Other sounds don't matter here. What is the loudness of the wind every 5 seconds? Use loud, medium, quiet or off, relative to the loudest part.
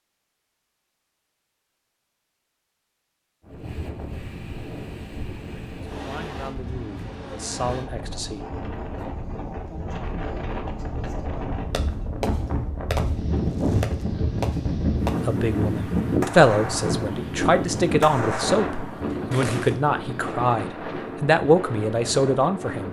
medium, medium, loud, loud, medium.